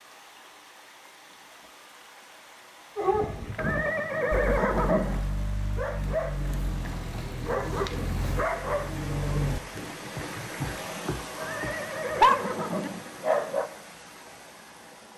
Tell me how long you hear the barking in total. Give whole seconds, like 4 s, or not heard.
11 s.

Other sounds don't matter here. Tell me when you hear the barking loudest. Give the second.
12 s.